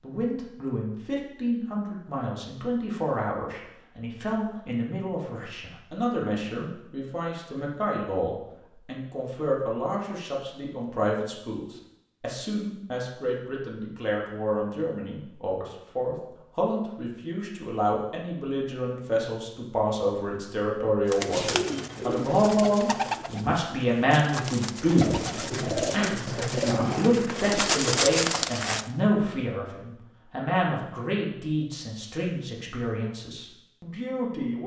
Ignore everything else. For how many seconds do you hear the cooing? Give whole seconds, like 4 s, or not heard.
8 s.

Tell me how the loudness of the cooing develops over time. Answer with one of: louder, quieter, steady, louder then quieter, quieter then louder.
louder.